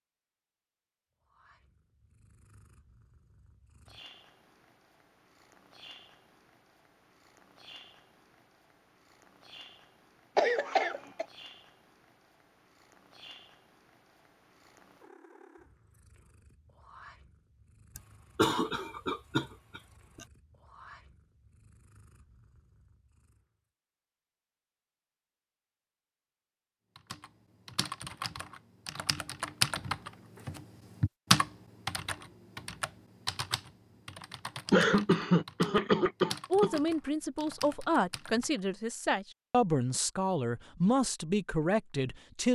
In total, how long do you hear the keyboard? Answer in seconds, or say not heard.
12 s.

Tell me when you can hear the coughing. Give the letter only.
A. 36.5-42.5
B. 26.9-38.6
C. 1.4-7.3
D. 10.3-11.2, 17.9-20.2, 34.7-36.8
D.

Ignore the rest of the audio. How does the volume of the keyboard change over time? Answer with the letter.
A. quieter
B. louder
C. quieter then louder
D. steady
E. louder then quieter
E.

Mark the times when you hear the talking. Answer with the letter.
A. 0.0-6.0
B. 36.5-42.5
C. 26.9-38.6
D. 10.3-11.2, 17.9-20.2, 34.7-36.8
B.